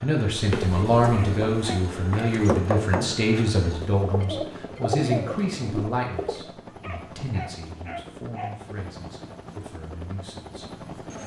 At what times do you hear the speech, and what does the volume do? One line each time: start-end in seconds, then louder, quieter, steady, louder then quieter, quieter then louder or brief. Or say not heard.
0.0-11.2 quieter.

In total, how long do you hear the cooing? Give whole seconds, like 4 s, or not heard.
6 s.